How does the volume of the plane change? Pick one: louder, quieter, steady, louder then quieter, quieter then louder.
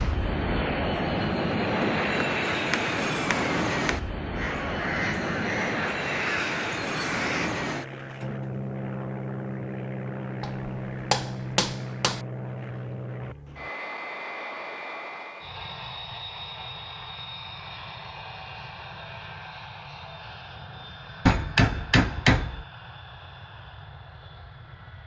quieter.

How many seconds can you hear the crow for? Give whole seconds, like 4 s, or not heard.
3 s.